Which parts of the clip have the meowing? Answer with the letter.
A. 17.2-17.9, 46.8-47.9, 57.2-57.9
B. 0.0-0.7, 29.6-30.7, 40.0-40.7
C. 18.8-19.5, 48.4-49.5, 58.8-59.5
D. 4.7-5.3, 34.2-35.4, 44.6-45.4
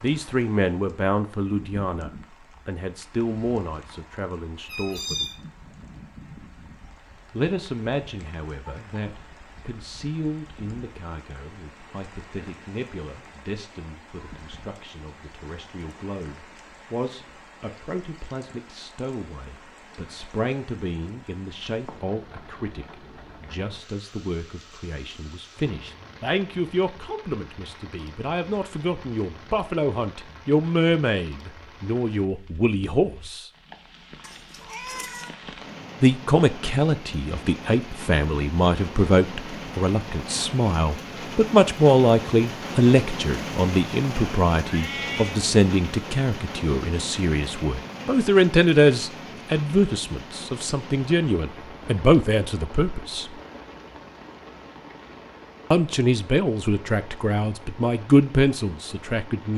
D.